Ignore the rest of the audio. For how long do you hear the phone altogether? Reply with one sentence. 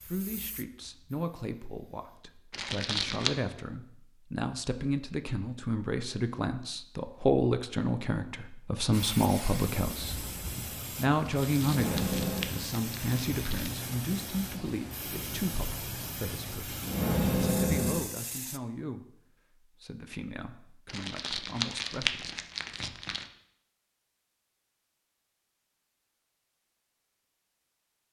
The phone can be heard for 2 seconds in total.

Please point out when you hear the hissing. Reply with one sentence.
The hissing can be heard from 0.0 to 2.4 s and from 8.9 to 18.6 s.